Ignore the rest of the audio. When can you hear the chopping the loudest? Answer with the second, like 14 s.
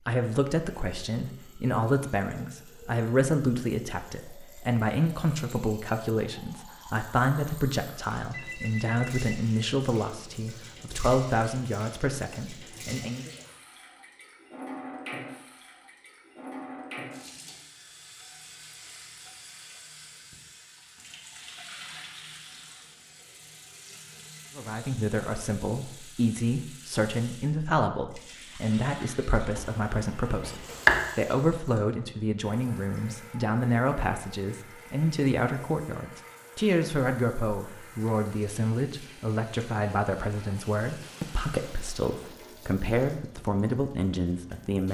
31 s.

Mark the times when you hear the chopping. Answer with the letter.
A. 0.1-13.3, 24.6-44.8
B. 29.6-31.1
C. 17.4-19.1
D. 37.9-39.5
B.